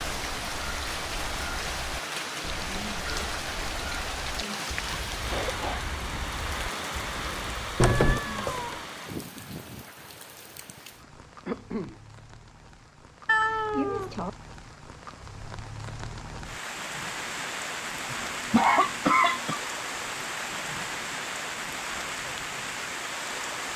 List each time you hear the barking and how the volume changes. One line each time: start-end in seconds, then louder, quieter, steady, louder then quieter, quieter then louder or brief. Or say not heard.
not heard.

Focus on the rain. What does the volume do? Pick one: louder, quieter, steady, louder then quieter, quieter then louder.
quieter then louder.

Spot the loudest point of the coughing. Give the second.
19 s.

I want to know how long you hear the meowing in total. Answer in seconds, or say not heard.
2 s.